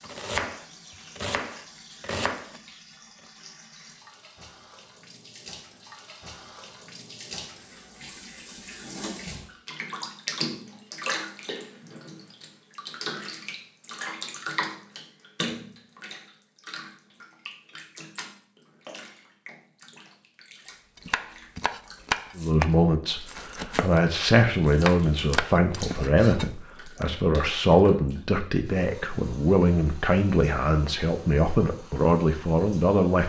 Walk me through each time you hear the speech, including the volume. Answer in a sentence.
The speech can be heard from 22.4 to 33.2 s, at a steady volume.